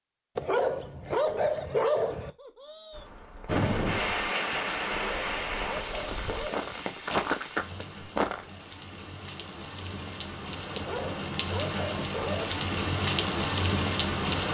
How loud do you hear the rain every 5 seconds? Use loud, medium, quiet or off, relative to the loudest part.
loud, medium, loud.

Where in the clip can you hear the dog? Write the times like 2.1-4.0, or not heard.
0.3-2.3, 4.8-6.8, 10.8-12.7.